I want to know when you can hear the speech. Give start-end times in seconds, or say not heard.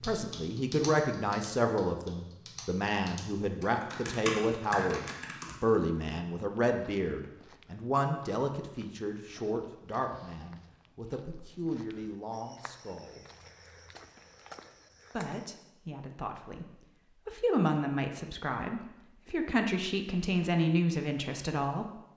0.0-13.2, 15.2-21.9.